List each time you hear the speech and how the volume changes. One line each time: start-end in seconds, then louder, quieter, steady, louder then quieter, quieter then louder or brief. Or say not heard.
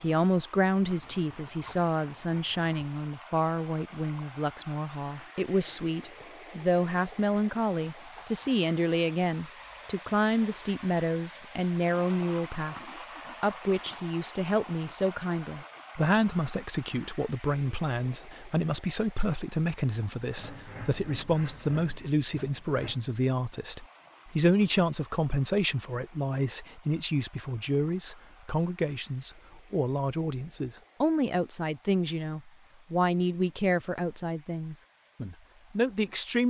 0.0-36.4 steady.